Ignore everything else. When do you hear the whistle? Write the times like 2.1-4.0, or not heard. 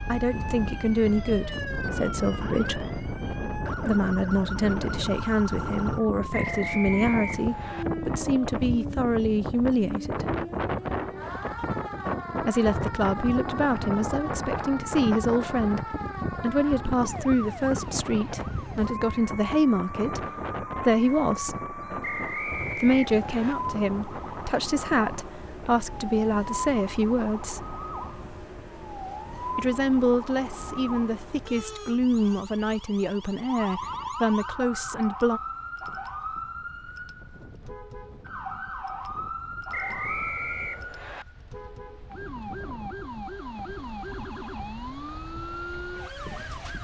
6.3-7.8, 22.0-23.6, 39.7-41.2.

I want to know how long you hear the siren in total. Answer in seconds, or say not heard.
47 s.